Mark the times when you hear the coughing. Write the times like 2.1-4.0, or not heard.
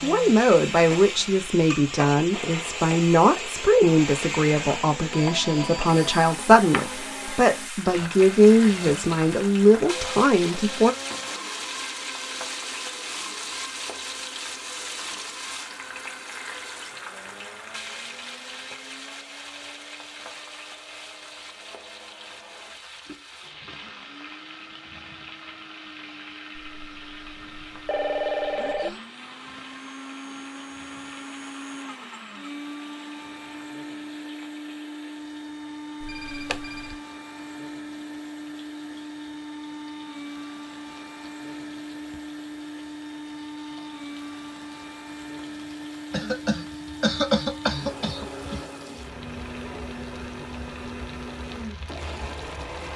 46.1-48.6.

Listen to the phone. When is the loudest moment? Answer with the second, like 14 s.
28 s.